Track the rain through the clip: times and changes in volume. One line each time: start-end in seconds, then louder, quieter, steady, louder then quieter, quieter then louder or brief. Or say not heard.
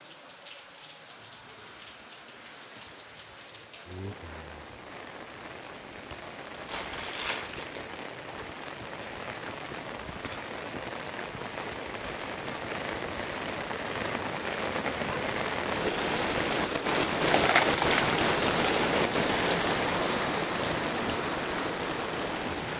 0.0-22.7 louder.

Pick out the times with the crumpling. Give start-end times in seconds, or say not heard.
6.7-7.7, 17.2-18.2.